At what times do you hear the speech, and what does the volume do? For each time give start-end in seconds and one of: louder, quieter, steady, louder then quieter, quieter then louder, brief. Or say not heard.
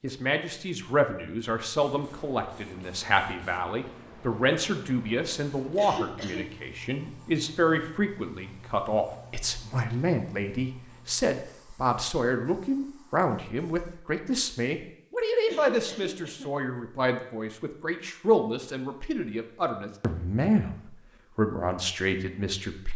0.0-22.9 steady.